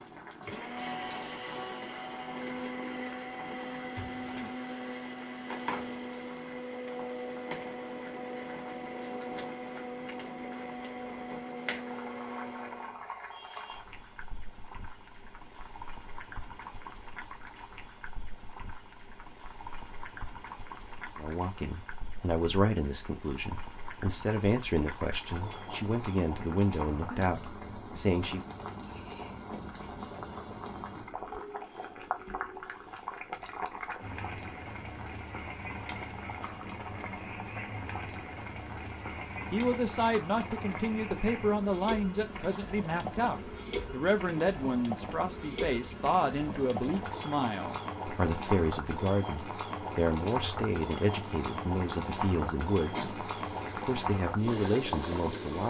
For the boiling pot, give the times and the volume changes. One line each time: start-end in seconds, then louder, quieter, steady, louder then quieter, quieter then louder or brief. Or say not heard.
0.0-55.6 louder.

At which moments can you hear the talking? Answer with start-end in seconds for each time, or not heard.
21.1-28.4, 39.5-55.6.